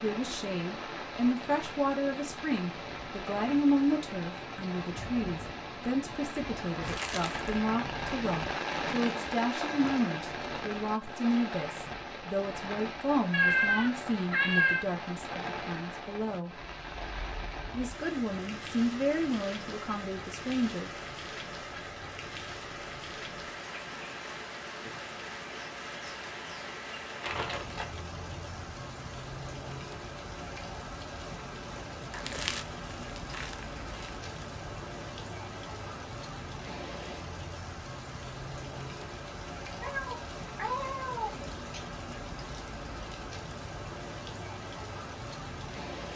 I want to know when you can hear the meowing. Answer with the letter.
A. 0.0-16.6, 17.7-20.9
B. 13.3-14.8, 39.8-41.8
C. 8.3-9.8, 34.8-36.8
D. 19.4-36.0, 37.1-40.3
B.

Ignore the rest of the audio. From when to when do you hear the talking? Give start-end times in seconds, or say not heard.
0.0-16.6, 17.7-20.9.